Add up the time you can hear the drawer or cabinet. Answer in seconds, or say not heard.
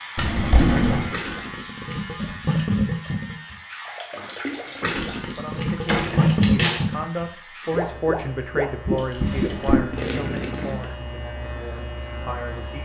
3 s.